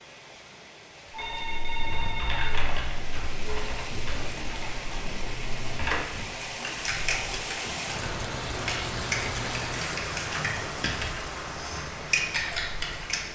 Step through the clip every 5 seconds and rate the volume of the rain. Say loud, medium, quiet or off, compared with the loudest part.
medium, loud, loud.